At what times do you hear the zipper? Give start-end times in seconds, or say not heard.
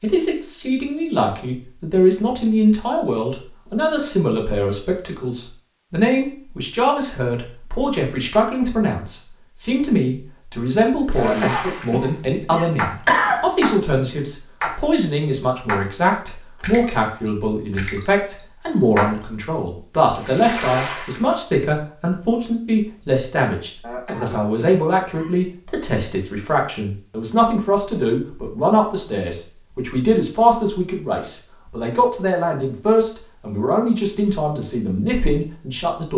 not heard.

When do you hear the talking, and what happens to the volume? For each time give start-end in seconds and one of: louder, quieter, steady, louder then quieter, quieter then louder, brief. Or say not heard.
0.0-36.1 steady.